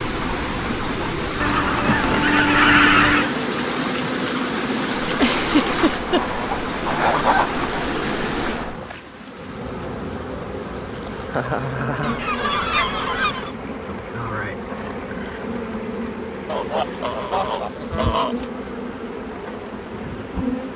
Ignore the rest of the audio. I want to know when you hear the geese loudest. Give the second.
3 s.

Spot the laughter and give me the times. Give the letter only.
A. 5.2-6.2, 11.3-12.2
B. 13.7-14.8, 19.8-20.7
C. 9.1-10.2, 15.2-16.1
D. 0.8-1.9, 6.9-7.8
A.